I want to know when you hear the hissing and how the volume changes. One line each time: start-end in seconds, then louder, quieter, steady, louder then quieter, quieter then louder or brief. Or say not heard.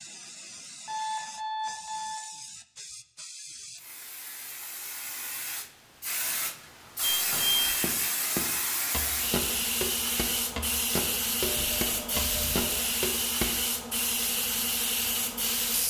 0.0-15.8 louder.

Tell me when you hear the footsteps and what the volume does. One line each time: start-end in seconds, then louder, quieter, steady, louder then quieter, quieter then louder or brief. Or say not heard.
7.7-13.6 steady.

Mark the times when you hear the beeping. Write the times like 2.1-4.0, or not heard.
0.8-2.2, 7.0-7.8, 11.4-12.8.